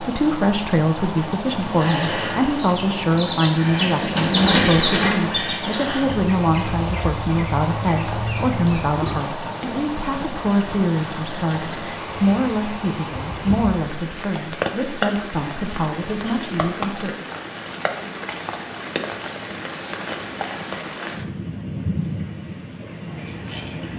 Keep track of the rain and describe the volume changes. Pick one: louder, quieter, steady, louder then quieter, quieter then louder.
steady.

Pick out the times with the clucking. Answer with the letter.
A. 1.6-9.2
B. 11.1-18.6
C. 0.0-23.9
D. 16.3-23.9
A.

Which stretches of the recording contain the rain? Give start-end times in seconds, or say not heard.
0.0-23.9.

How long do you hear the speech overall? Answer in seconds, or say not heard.
17 s.